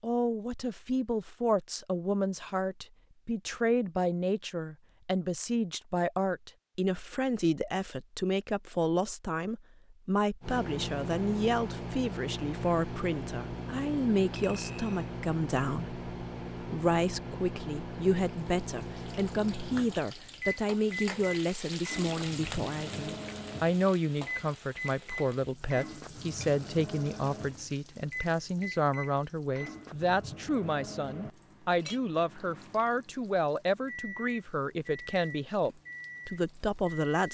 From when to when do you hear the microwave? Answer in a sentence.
The microwave can be heard from 10.4 to 37.1 s.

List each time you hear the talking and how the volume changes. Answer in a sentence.
The talking can be heard from 0.0 to 37.2 s, at a steady volume.